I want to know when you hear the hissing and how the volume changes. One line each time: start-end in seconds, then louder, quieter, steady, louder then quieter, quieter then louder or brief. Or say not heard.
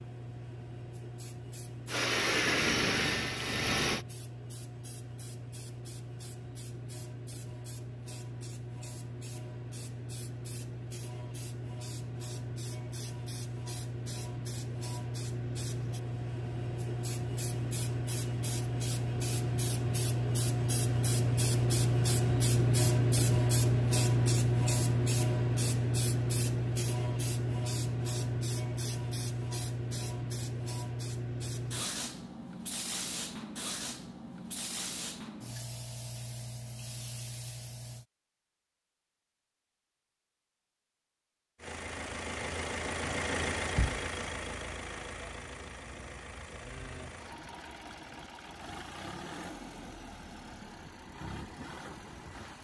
0.0-38.0 louder then quieter.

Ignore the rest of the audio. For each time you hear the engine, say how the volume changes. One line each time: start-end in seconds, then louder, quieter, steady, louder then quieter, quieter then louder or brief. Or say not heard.
1.9-4.0 brief
41.5-52.5 quieter.